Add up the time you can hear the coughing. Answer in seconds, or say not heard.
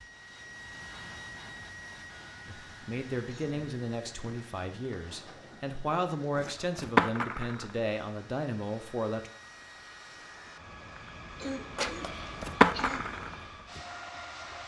2 s.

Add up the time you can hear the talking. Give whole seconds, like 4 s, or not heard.
7 s.